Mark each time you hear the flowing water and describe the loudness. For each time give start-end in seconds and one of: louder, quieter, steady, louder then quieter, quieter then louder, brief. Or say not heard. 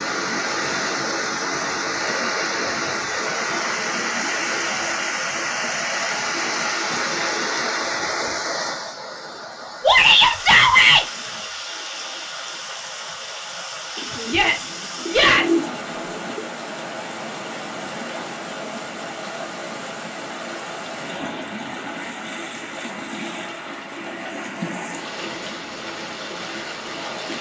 0.0-27.3 quieter.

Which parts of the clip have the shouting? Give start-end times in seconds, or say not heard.
9.8-11.1, 14.2-15.7.